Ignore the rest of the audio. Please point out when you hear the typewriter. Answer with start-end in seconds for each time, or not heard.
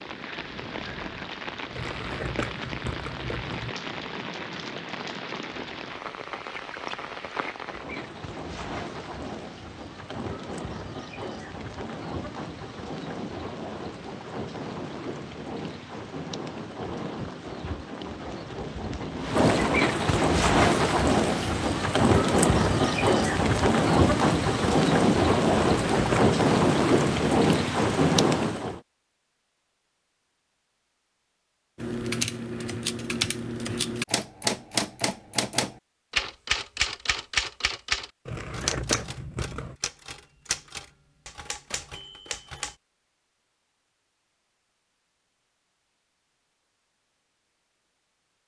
31.8-42.8.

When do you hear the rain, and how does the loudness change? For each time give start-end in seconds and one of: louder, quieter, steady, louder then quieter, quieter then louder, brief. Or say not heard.
0.0-28.8 louder.